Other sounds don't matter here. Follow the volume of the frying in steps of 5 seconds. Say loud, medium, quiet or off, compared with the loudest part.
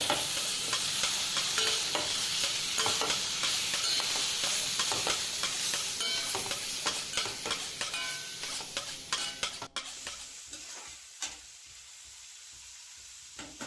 loud, medium, quiet.